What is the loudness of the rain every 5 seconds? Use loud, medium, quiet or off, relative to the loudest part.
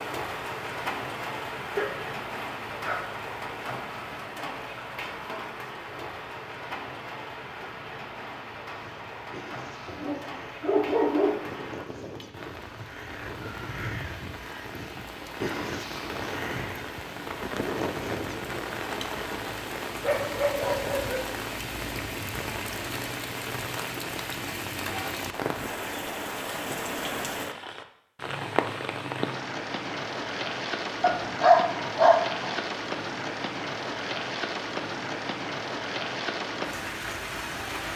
loud, medium, medium, loud, loud, loud, loud, loud.